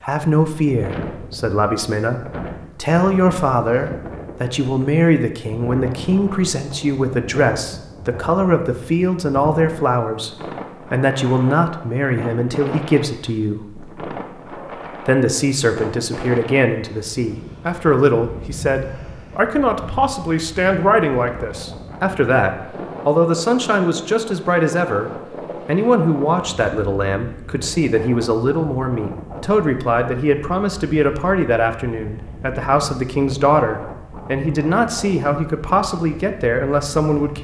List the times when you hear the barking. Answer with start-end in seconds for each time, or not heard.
not heard.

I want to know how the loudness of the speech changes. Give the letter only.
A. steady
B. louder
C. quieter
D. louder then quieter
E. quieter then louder
A.